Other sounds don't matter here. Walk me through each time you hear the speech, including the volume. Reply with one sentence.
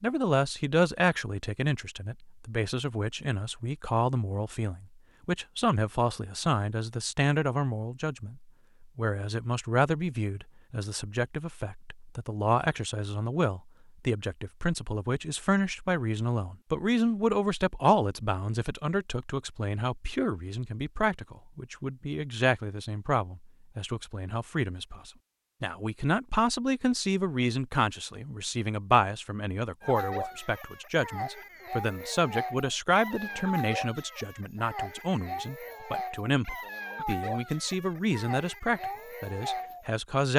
You can hear the speech from 0.0 to 40.3 s, at a steady volume.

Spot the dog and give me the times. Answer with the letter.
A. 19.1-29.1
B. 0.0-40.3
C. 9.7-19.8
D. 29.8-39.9
D.